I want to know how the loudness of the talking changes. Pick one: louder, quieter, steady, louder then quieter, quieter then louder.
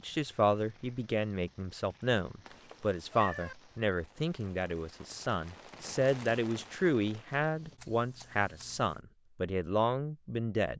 steady.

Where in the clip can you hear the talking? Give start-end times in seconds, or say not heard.
0.0-10.7.